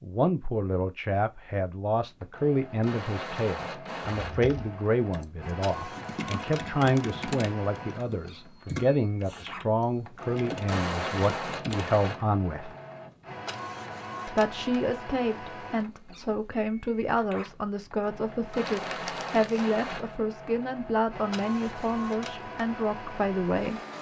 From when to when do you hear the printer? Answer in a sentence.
The printer can be heard from 2.0 to 23.9 s.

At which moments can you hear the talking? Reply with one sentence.
The talking can be heard from 0.0 to 12.7 s and from 14.2 to 23.8 s.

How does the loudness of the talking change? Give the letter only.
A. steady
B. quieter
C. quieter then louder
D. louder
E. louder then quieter
A.